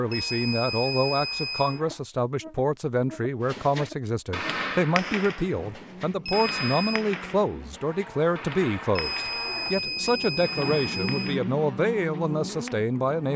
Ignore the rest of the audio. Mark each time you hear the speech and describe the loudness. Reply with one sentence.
You can hear the speech from 0.0 to 13.3 s, at a steady volume.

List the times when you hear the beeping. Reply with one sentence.
The beeping can be heard from 0.1 to 1.8 s, from 6.2 to 7.0 s and from 8.9 to 11.4 s.